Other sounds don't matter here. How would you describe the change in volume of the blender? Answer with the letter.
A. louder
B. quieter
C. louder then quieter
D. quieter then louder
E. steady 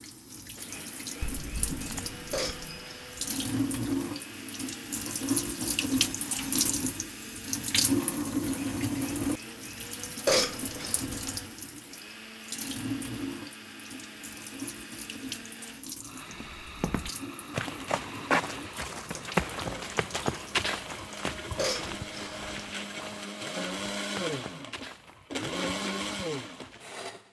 A.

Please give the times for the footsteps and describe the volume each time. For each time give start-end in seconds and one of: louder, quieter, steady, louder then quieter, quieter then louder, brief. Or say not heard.
16.3-26.9 quieter.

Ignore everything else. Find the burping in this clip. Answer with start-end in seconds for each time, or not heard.
2.3-3.3, 10.2-11.4, 21.6-22.6.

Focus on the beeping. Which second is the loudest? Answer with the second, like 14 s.
2 s.